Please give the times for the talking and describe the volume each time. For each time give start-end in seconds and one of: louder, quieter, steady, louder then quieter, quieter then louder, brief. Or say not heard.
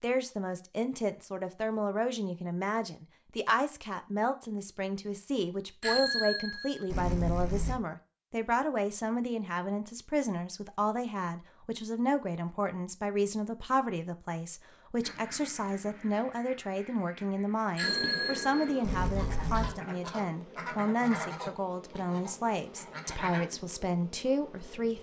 0.0-24.9 steady.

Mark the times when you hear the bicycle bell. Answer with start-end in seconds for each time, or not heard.
5.8-7.8, 17.8-19.7.